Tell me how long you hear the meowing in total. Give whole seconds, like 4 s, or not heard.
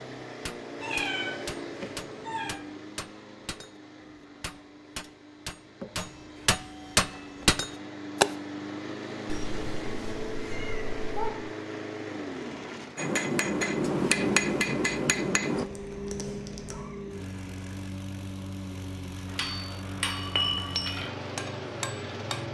5 s.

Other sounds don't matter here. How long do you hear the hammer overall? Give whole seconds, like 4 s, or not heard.
14 s.